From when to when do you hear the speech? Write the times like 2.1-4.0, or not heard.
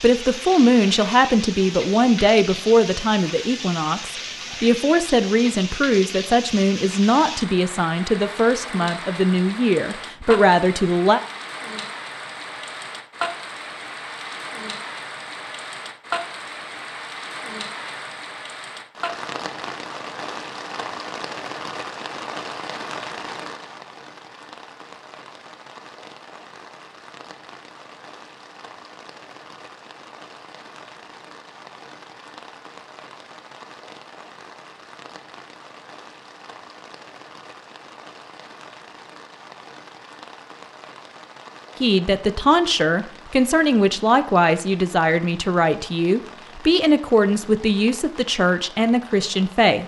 0.0-11.2, 41.8-49.8.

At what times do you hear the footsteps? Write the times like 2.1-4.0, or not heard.
not heard.